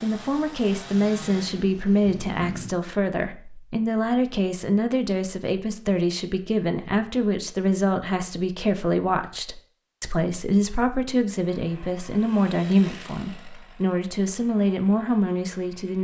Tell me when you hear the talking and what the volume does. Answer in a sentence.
The talking can be heard from 0.0 to 16.0 s, at a steady volume.